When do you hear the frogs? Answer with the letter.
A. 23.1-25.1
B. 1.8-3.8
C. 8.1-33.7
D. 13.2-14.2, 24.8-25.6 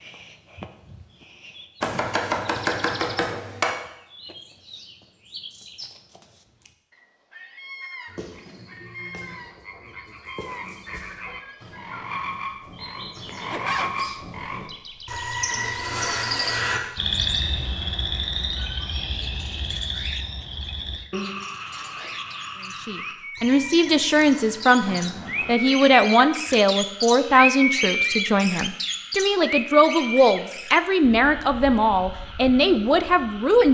C.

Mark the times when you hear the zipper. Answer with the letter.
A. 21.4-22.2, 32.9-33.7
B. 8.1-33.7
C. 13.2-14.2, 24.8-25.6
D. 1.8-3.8
C.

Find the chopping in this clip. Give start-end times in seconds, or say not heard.
1.8-3.8.